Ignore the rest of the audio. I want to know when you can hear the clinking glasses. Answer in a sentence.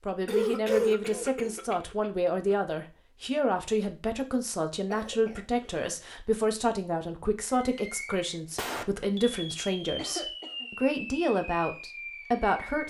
The clinking glasses can't be heard in this clip.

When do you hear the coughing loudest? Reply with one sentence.
The volume of the coughing peaks at 1 second.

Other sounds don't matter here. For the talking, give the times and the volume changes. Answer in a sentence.
You can hear the talking from 0.0 to 12.8 s, at a steady volume.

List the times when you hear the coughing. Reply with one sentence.
The coughing can be heard from 0.2 to 2.5 s, from 4.9 to 5.9 s and from 9.9 to 10.7 s.